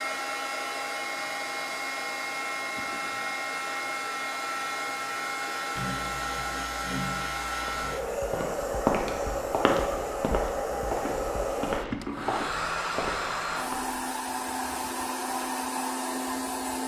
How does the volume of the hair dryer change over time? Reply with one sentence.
The loudness of the hair dryer stays about the same.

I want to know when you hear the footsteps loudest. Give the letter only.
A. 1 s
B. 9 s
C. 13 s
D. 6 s
B.